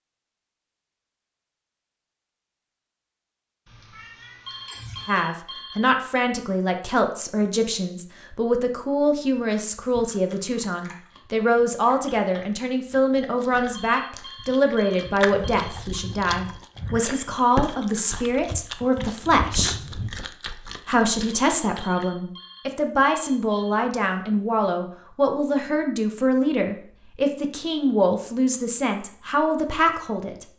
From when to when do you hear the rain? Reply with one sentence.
The rain can't be heard in this clip.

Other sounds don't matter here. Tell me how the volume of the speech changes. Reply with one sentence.
The volume of the speech stays about the same.